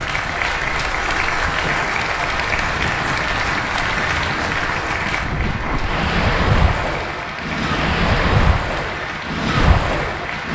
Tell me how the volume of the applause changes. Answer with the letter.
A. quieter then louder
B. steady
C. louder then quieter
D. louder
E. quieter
E.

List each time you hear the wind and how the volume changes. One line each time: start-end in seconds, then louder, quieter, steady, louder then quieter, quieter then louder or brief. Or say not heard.
0.0-10.5 louder.